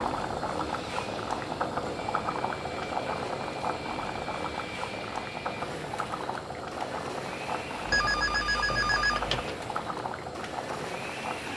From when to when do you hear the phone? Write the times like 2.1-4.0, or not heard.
7.8-9.6.